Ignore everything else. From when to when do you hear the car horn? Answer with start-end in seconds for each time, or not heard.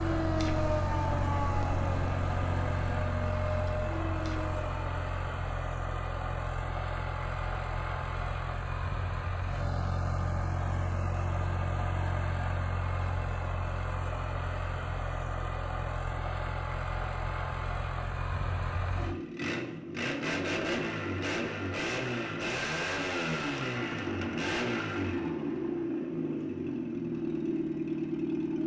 not heard.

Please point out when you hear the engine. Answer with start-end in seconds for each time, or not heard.
0.0-28.6.